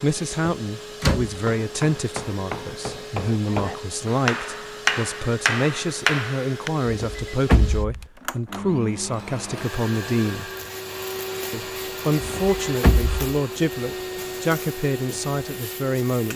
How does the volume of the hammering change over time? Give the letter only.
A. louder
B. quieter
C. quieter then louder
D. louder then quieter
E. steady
A.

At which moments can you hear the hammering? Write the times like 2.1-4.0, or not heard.
1.2-6.7.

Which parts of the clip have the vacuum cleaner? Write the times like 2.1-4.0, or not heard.
0.0-16.3.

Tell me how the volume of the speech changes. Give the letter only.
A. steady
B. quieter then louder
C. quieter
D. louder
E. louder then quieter
A.